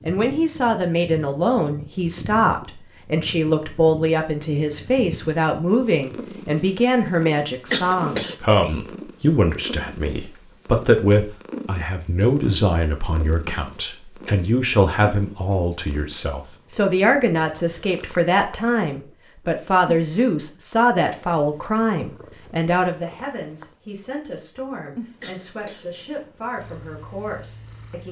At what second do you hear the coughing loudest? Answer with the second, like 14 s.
8 s.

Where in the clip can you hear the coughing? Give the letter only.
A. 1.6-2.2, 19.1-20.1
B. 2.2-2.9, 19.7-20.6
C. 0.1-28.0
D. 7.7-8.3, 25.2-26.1
D.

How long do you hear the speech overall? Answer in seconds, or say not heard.
28 s.